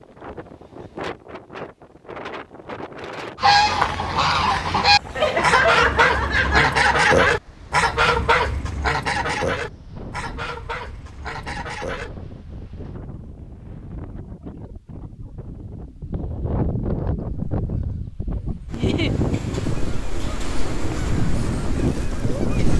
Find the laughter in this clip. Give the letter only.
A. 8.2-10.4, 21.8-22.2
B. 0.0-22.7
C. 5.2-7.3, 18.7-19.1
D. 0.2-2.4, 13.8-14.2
C.